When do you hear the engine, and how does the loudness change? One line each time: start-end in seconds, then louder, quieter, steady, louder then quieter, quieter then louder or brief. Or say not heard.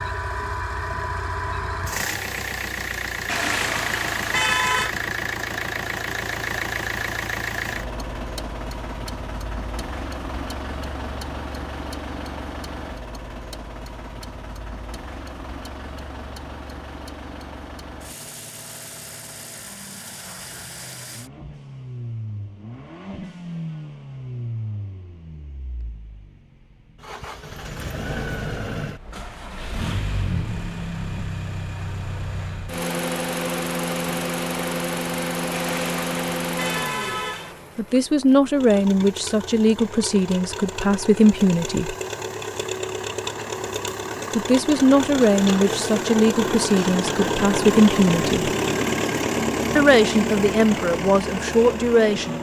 0.0-52.3 quieter then louder.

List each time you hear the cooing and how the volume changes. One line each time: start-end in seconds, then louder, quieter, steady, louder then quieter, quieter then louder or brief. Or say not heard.
not heard.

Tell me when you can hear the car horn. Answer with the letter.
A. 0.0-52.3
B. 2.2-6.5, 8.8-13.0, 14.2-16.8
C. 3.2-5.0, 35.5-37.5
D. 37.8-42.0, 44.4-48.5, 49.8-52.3
C.